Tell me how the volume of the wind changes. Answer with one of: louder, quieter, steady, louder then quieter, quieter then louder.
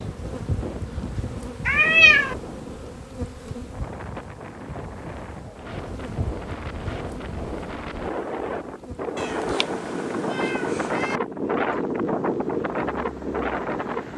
louder.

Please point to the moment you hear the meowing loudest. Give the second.
2 s.